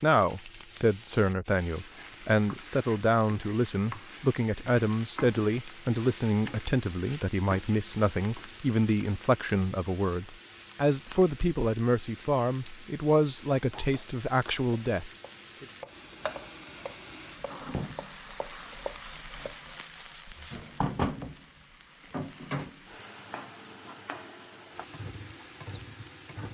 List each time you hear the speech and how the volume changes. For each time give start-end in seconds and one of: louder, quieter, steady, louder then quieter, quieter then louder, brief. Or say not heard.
0.0-15.7 steady.